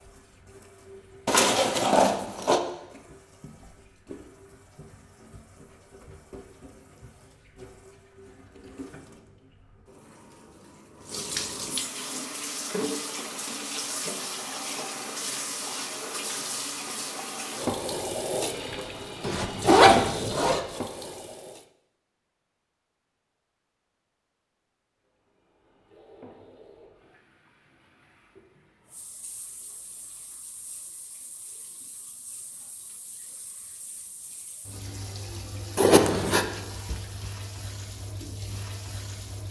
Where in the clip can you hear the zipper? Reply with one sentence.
You can hear the zipper from 1.2 to 2.6 s, from 19.2 to 20.6 s and from 35.8 to 36.5 s.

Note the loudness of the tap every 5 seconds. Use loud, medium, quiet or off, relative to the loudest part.
quiet, quiet, loud, loud, loud, quiet, quiet, medium.